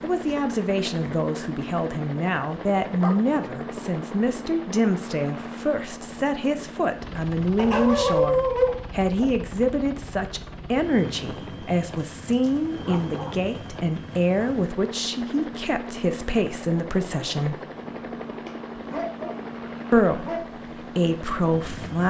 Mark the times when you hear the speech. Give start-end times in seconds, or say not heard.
0.0-17.6, 19.9-22.0.